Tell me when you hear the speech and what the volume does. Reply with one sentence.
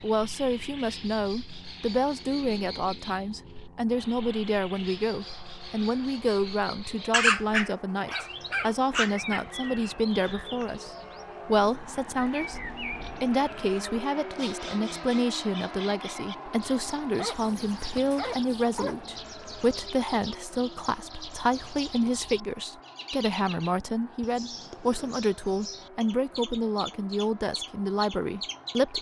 You can hear the speech from 0.0 to 28.9 s, at a steady volume.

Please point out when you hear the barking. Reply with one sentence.
The barking can be heard from 7.1 to 9.4 s and from 17.1 to 19.1 s.